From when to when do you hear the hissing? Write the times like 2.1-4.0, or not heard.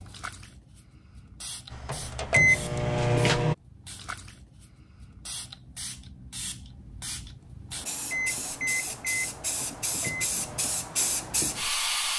0.0-12.1.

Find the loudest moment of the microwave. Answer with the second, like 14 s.
3 s.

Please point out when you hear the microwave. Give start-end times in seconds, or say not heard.
1.7-3.5, 8.1-10.7.